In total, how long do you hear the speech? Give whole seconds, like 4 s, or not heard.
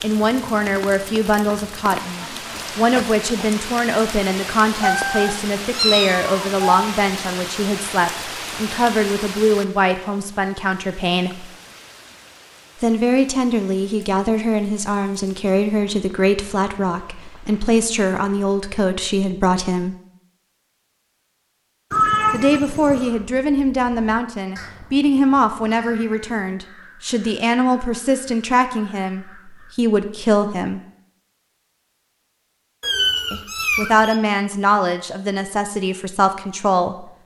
31 s.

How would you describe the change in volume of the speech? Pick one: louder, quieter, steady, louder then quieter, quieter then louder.
steady.